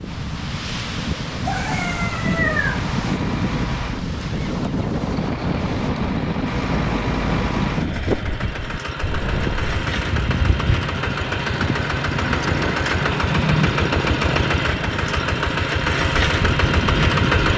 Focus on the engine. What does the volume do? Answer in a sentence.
The loudness of the engine goes up.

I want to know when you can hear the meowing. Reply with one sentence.
You can hear the meowing from 1.4 to 3.2 s.